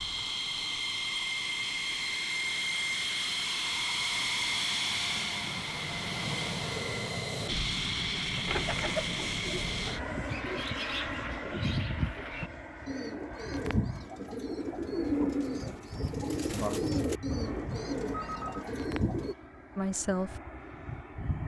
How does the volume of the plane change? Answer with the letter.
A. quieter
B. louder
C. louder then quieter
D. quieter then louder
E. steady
A.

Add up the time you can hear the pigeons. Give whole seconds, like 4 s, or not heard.
12 s.